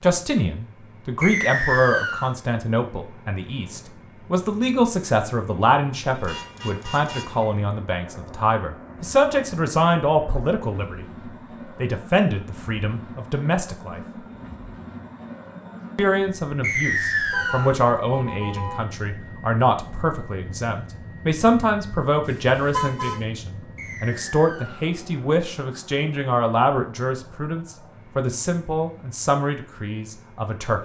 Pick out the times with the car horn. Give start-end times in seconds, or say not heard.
6.1-7.6, 17.3-18.8, 22.2-23.2.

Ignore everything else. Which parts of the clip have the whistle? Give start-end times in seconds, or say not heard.
1.2-2.4, 16.6-17.8, 23.8-24.9.